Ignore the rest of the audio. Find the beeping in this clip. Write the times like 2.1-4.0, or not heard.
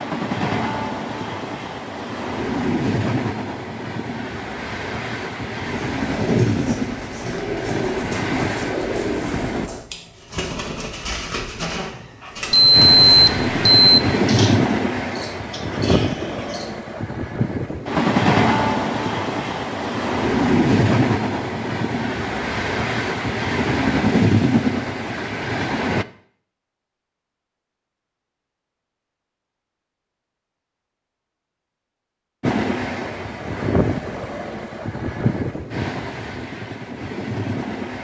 12.5-14.0.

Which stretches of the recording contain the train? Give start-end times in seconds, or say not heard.
0.0-9.7, 12.7-26.1, 32.4-38.0.